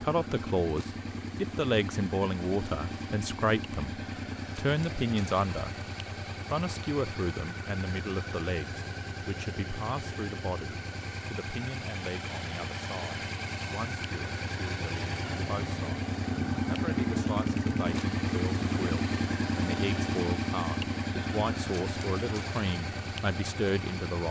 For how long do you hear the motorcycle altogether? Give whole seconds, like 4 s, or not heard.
24 s.